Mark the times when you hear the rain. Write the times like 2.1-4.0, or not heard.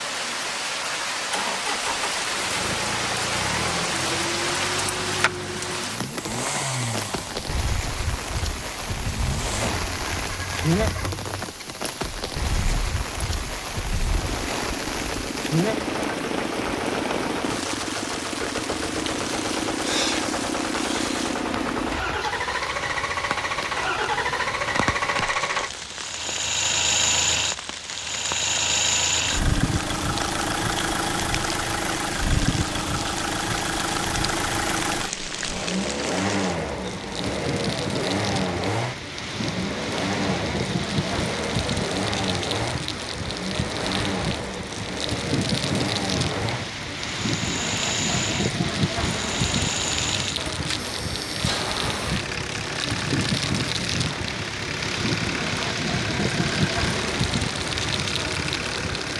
0.0-59.1.